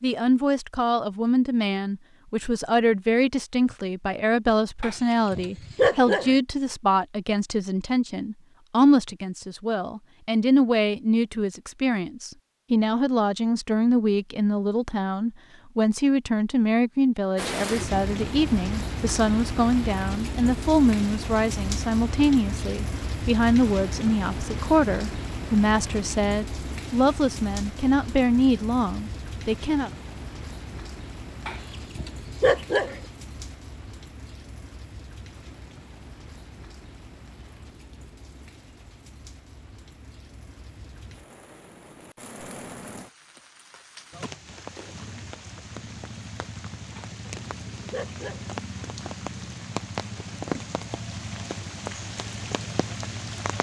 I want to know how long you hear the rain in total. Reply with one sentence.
The rain can be heard for 36 seconds in total.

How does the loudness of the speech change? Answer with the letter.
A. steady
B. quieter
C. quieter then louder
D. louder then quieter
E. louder
A.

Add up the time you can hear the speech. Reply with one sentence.
You can hear the speech for 30 seconds altogether.